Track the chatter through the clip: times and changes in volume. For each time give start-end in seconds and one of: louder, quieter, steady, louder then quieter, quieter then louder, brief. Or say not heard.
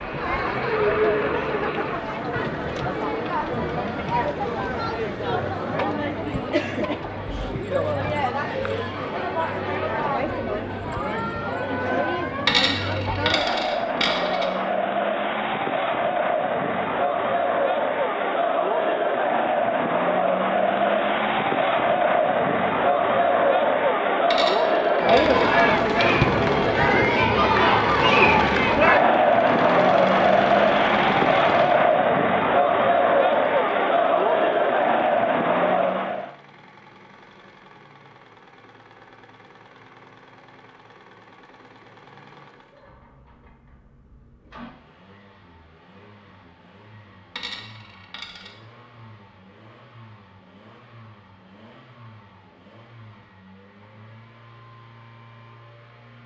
0.0-36.4 louder.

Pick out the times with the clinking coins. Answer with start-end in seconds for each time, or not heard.
12.4-14.4, 24.3-25.6, 47.4-48.5.